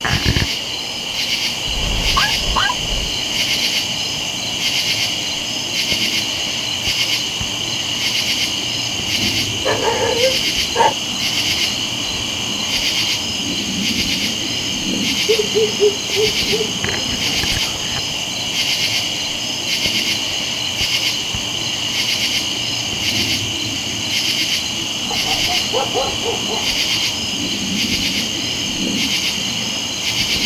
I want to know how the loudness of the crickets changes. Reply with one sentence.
The loudness of the crickets stays about the same.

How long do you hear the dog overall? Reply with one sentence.
You can hear the dog for 6 seconds altogether.